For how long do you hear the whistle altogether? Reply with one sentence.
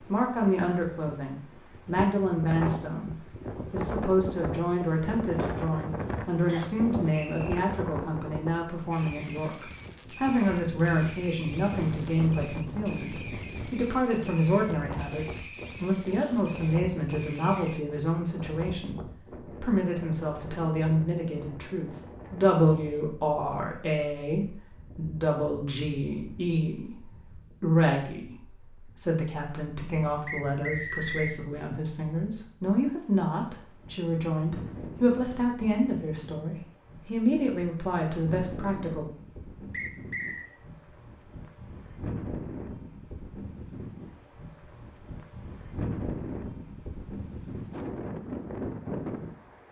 The whistle can be heard for 3 seconds in total.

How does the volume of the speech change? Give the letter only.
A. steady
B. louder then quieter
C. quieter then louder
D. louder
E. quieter
A.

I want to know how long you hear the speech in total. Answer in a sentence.
The speech can be heard for 39 seconds in total.